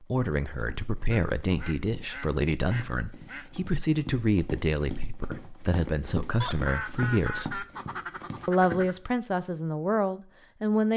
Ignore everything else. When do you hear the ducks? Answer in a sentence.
The ducks can be heard from 1.1 to 3.5 s and from 6.4 to 9.0 s.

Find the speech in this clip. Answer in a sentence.
You can hear the speech from 0.0 to 7.7 s and from 8.4 to 10.9 s.